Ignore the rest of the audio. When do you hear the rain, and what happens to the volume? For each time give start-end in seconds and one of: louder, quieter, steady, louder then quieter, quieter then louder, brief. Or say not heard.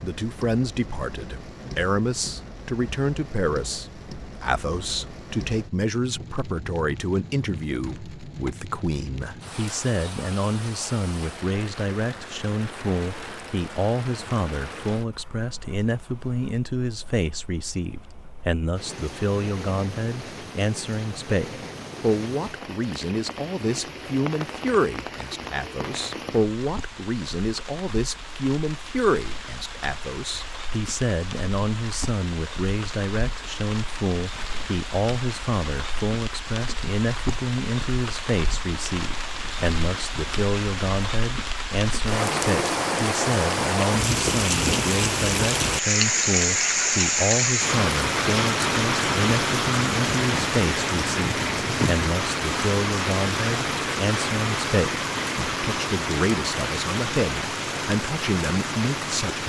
0.0-59.4 louder.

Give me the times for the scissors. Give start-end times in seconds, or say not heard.
not heard.